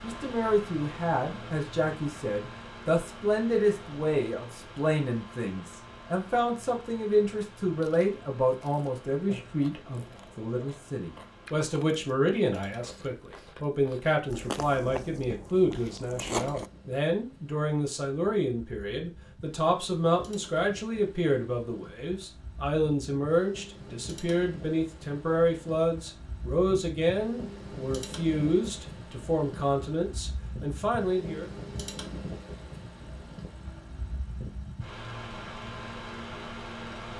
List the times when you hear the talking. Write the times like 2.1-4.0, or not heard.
0.0-31.5.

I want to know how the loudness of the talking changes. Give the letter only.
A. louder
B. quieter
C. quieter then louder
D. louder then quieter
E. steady
E.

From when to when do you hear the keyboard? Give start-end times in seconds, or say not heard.
not heard.